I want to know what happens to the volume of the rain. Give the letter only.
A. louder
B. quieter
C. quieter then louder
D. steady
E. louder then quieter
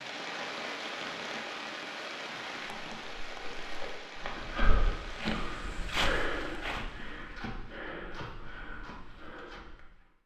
B.